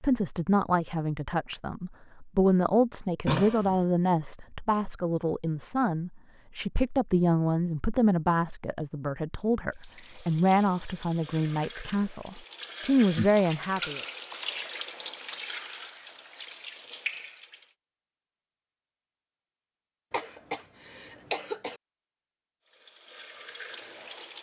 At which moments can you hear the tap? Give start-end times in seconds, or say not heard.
9.7-17.8, 22.6-24.3.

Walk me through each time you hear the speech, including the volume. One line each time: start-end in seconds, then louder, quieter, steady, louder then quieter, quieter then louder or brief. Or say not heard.
0.0-14.0 steady.